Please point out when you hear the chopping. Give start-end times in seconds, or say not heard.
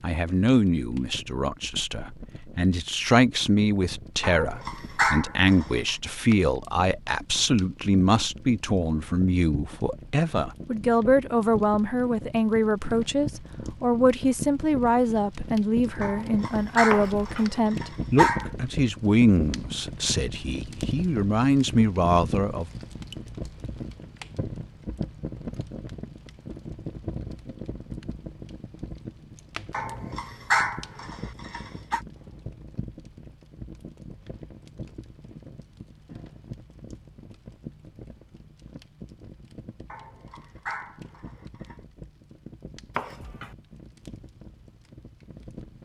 16.9-17.5, 43.0-43.5.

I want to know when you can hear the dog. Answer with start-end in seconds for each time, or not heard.
4.2-6.0, 16.0-18.5, 29.7-32.0, 39.9-41.8.